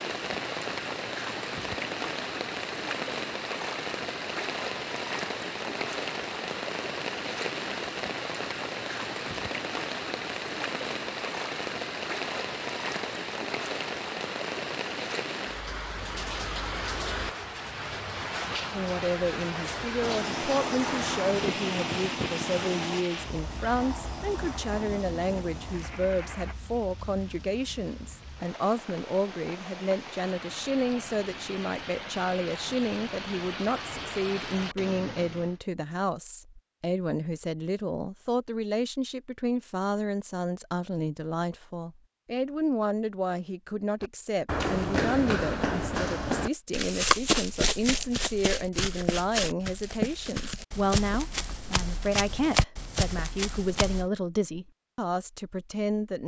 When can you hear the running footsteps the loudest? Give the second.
47 s.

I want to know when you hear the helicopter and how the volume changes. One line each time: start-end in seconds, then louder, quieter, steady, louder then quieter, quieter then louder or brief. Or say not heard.
20.0-26.6 quieter.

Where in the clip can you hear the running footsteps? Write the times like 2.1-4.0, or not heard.
44.0-54.0.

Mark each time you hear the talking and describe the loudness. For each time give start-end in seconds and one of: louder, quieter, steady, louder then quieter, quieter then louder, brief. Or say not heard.
18.7-56.2 steady.